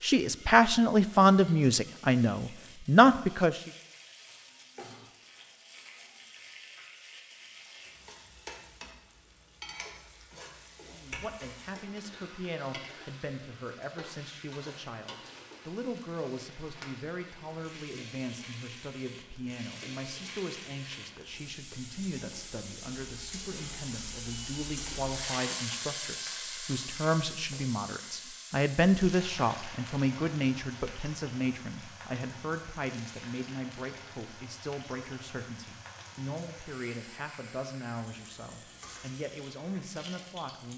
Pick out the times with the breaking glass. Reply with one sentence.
You can hear the breaking glass from 11.1 to 11.6 s.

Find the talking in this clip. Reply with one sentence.
You can hear the talking from 0.0 to 3.7 s and from 10.9 to 40.7 s.